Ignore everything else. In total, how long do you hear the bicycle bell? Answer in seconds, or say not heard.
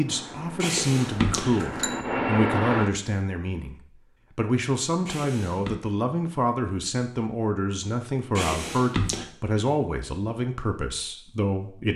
3 s.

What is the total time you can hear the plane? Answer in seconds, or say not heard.
3 s.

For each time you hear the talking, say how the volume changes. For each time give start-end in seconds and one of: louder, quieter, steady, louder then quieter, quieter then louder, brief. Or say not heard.
0.0-11.9 steady.